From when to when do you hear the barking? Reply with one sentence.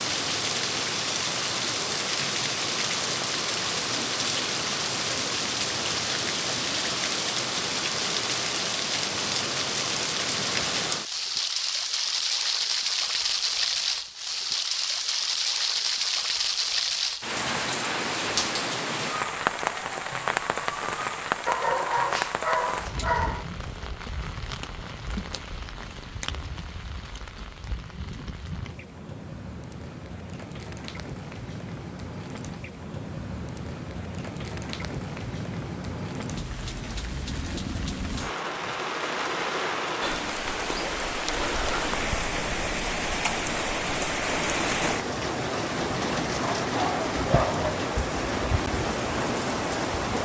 The barking can be heard from 21.4 to 23.4 s and from 46.4 to 47.9 s.